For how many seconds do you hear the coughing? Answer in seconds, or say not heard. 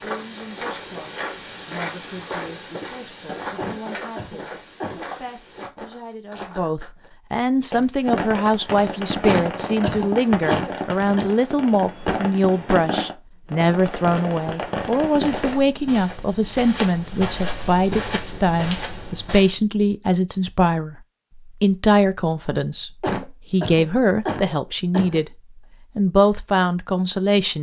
6 s.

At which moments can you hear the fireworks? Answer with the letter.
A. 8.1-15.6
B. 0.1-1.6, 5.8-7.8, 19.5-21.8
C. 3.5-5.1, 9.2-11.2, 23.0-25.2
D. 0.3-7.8
A.